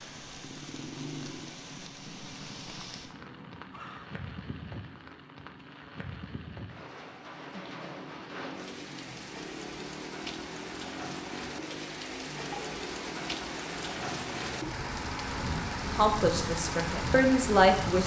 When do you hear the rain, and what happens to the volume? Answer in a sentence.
You can hear the rain from 0.0 to 18.0 s, getting louder.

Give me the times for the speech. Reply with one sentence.
You can hear the speech from 15.9 to 18.0 s.